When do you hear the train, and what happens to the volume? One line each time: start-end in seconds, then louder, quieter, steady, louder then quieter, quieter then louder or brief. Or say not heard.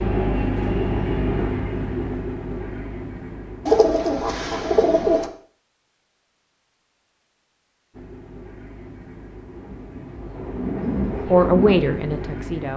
0.0-5.2 quieter
7.9-12.7 louder.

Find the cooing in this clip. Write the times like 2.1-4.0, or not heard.
3.6-5.3.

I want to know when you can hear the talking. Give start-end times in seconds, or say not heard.
11.2-12.7.